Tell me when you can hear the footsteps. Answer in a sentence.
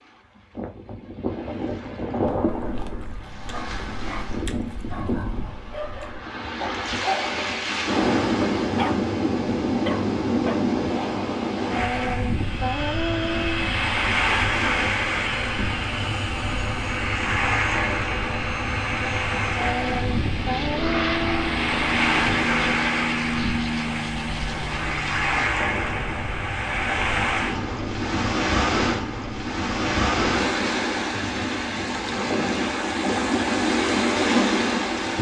The footsteps can't be heard in this clip.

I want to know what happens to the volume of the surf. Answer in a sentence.
The volume of the surf goes up.